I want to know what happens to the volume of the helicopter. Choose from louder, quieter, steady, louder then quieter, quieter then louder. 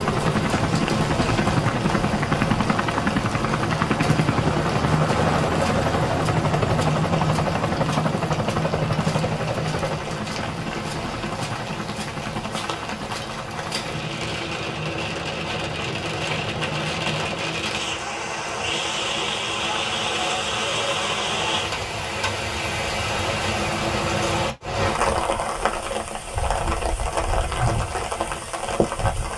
quieter.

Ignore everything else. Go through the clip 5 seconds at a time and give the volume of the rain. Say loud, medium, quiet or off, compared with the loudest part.
medium, medium, medium, loud, loud, loud.